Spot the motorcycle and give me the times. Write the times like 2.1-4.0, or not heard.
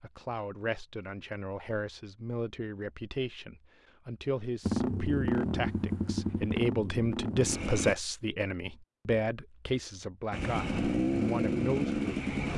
4.6-8.0, 10.3-12.5.